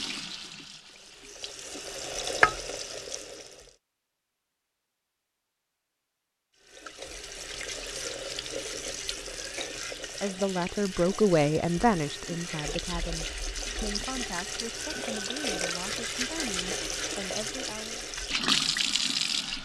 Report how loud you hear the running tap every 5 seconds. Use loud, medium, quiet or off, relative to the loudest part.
loud, medium, medium, loud.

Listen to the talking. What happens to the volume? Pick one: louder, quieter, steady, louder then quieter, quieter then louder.
quieter.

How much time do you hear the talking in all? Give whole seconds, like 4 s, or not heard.
8 s.